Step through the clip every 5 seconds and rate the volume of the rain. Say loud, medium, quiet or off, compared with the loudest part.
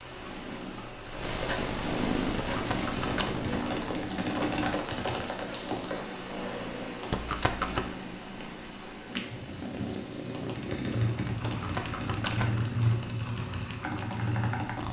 loud, loud, medium.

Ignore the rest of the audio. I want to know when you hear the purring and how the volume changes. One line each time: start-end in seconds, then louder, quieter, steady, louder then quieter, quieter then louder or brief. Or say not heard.
0.0-14.8 quieter then louder.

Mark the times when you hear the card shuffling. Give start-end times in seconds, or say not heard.
2.5-3.2, 7.1-8.0, 11.4-12.6.